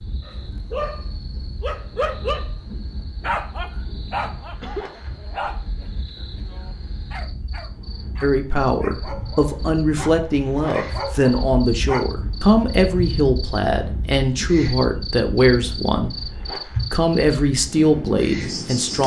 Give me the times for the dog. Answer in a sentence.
You can hear the dog from 0.2 to 12.1 s.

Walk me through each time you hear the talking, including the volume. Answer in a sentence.
You can hear the talking from 8.2 to 16.2 s, at a steady volume; and briefly from 16.9 to 19.0 s.